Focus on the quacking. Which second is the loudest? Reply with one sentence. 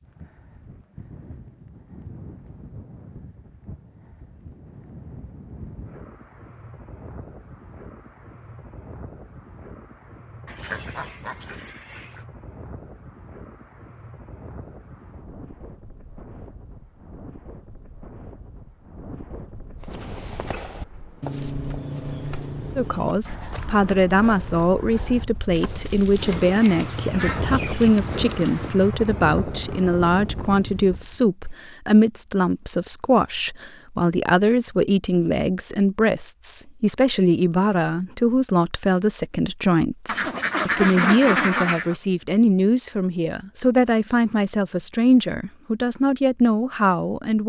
The loudest moment of the quacking is at 41 seconds.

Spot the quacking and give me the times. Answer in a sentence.
You can hear the quacking from 10.4 to 12.2 s, from 26.1 to 27.9 s and from 40.0 to 42.0 s.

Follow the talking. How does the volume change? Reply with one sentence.
The volume of the talking stays about the same.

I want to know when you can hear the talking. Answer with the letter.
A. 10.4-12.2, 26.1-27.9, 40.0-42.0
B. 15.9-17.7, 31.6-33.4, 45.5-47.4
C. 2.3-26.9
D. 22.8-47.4
D.